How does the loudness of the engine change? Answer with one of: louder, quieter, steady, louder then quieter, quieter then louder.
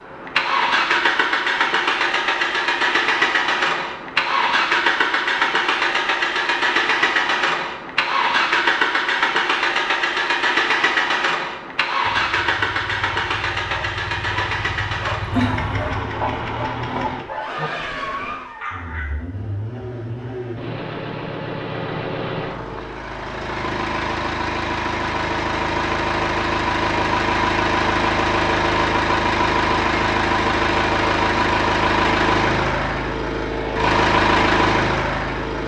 quieter then louder.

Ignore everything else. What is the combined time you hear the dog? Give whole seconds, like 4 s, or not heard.
7 s.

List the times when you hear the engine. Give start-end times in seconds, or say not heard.
0.0-35.6.